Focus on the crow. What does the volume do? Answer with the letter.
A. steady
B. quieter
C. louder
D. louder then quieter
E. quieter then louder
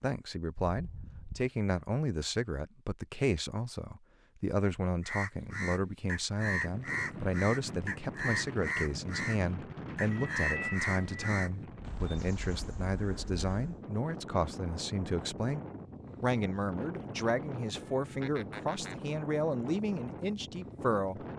B.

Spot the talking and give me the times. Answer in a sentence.
The talking can be heard from 0.0 to 15.6 s and from 16.2 to 21.2 s.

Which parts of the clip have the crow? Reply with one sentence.
The crow can be heard from 5.0 to 13.8 s.